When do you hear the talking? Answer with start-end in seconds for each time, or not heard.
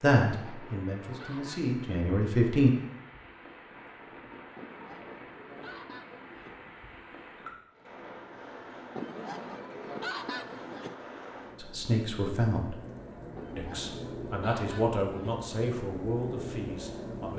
0.0-2.7, 11.7-12.8, 13.6-17.3.